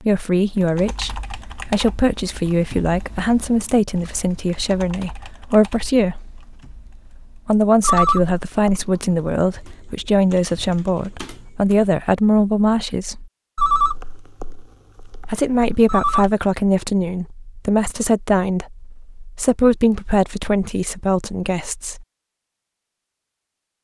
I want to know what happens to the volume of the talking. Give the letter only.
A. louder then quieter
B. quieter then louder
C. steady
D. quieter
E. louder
C.